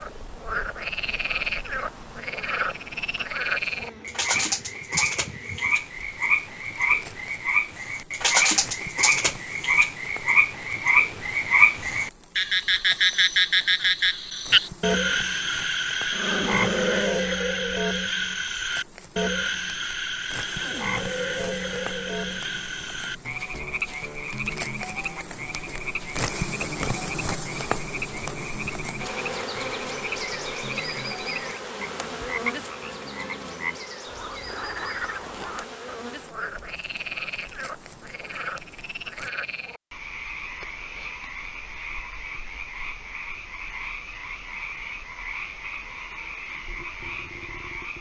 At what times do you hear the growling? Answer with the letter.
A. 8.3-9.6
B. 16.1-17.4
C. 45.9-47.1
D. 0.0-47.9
B.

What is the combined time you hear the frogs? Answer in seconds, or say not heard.
48 s.